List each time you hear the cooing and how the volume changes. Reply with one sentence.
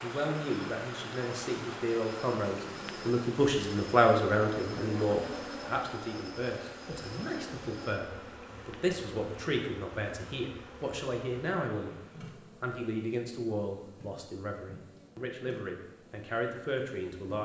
You can't hear the cooing here.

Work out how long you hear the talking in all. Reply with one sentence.
You can hear the talking for 17 seconds altogether.